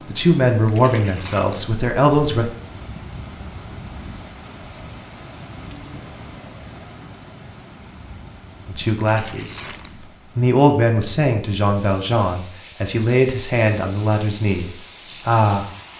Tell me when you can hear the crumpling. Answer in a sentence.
The crumpling can be heard from 0.7 to 1.8 s and from 9.0 to 10.1 s.